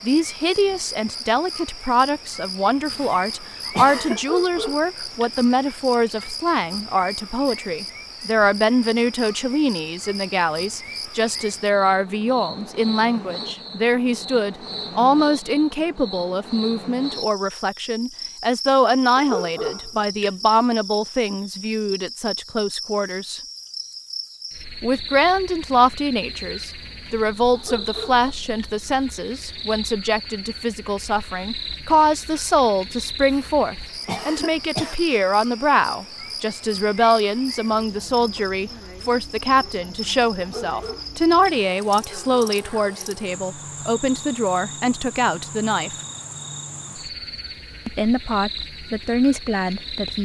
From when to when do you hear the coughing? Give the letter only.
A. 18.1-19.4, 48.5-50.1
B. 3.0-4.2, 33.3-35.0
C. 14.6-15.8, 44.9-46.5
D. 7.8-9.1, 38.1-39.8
B.